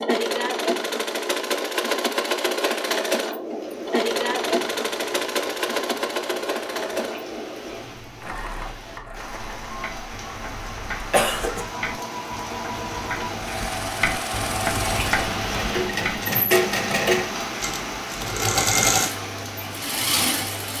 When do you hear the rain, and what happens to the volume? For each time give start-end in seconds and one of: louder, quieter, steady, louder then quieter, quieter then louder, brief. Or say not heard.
3.4-20.7 louder.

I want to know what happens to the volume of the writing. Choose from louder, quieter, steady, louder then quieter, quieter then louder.
louder.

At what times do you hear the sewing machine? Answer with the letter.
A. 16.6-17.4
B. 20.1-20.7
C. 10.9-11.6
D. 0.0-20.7
D.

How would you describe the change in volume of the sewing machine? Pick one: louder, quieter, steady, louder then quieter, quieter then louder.
quieter then louder.